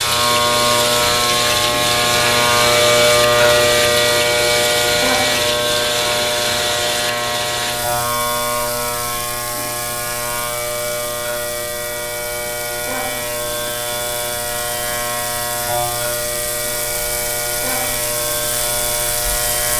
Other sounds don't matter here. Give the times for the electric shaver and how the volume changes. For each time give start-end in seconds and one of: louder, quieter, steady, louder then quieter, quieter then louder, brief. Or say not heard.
0.0-19.7 quieter.